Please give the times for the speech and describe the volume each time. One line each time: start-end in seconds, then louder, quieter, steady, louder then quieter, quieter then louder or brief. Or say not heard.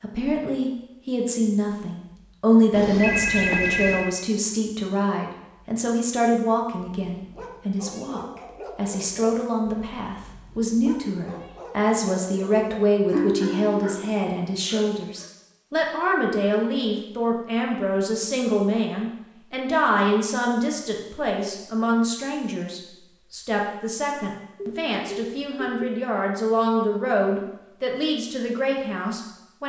0.0-29.6 steady.